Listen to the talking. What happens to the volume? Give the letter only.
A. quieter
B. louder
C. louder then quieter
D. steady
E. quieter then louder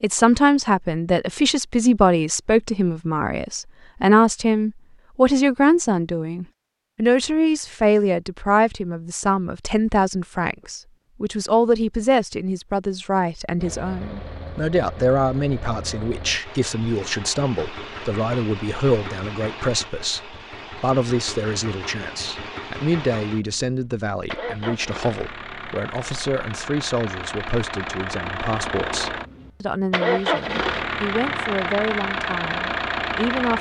A.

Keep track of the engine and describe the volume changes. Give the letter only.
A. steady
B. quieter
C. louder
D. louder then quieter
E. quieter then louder
C.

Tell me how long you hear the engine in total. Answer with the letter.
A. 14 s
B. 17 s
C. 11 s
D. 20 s
D.